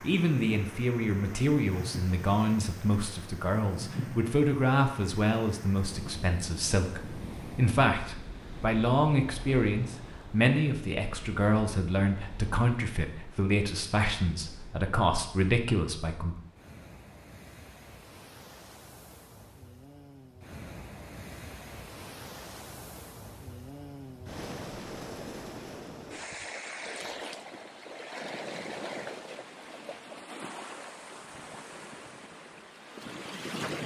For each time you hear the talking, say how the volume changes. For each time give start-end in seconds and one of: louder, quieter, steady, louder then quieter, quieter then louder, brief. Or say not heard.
0.0-16.4 steady.